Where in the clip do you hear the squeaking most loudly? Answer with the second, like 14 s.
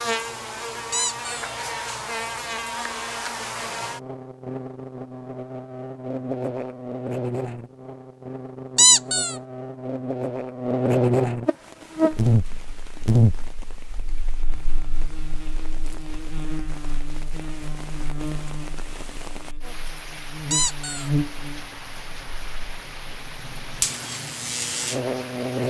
9 s.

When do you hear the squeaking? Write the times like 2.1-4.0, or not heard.
0.9-1.5, 8.8-9.3, 20.5-21.1.